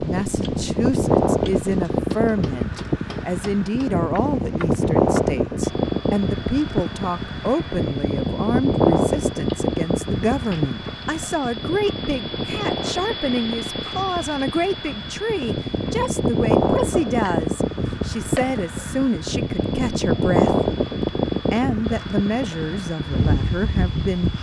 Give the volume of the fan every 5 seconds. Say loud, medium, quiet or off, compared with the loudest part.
loud, loud, medium, loud, loud.